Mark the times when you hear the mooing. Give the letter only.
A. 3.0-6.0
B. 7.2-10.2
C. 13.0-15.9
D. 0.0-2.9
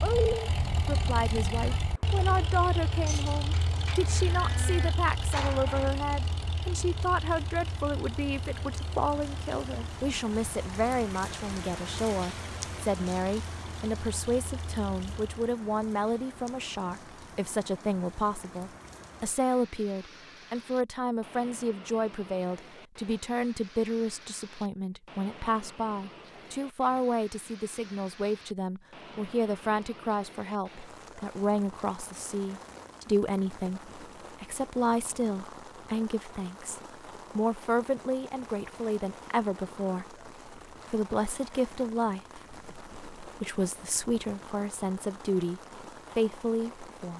A.